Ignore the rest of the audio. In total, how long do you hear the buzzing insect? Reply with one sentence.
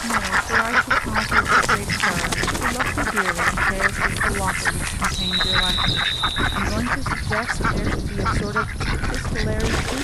The buzzing insect can't be heard in this clip.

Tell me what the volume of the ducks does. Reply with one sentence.
The volume of the ducks goes down.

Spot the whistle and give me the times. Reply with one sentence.
You can hear the whistle from 5.1 to 6.7 s.